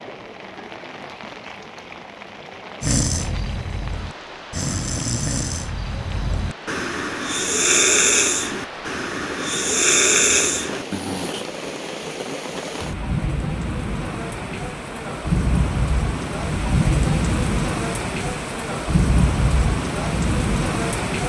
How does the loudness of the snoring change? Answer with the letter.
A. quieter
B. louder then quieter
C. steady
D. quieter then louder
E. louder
E.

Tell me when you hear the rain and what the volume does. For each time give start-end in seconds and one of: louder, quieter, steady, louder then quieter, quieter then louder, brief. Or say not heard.
0.0-21.2 louder.